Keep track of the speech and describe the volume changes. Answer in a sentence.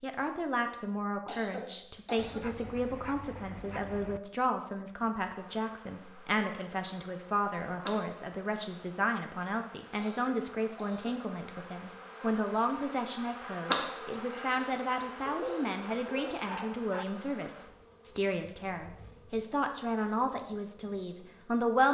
The volume of the speech stays about the same.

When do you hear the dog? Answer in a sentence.
You can hear the dog from 2.1 to 4.2 s and from 15.2 to 17.1 s.